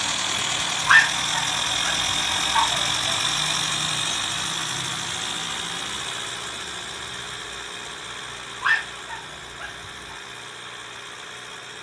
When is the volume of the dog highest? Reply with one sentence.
The loudest moment of the dog is at 1 second.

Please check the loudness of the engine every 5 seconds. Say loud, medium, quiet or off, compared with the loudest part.
loud, medium, quiet.